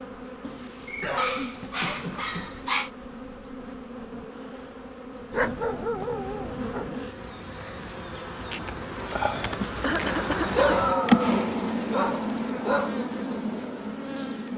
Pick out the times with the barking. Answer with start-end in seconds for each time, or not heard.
0.4-2.9, 5.3-6.9, 10.3-12.9.